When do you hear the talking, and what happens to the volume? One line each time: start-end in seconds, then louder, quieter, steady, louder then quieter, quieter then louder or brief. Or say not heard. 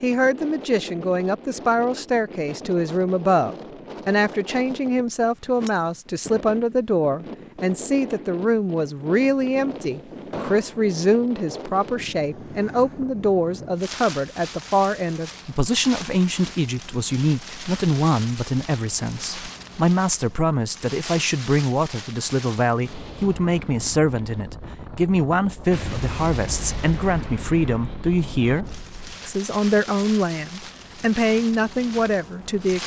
0.0-32.8 steady.